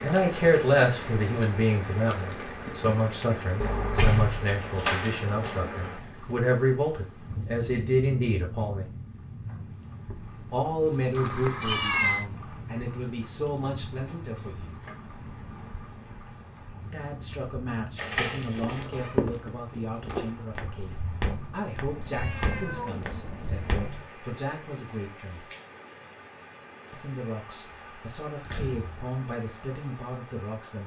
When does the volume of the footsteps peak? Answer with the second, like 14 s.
19 s.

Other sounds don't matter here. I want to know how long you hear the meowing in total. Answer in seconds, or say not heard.
3 s.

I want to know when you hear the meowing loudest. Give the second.
12 s.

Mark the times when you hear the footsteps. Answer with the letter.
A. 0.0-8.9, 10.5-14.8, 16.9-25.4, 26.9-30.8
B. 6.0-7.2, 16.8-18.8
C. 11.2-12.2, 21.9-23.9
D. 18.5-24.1
D.